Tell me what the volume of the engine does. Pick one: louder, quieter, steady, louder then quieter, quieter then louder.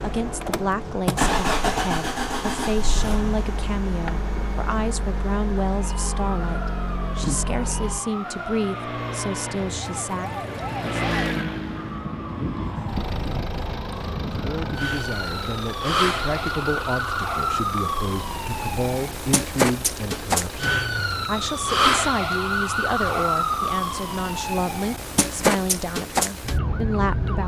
quieter.